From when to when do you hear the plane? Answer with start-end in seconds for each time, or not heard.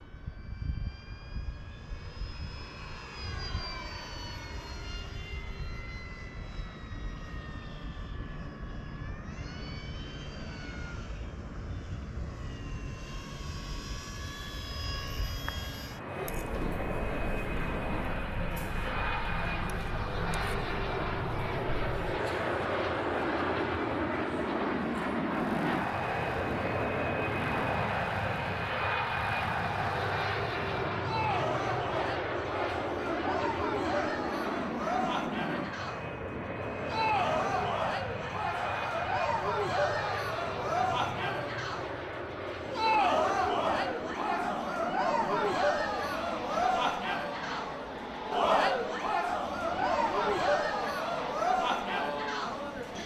0.0-53.0.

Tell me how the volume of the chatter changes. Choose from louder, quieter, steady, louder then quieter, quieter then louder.
louder.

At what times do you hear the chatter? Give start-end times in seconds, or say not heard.
15.9-53.0.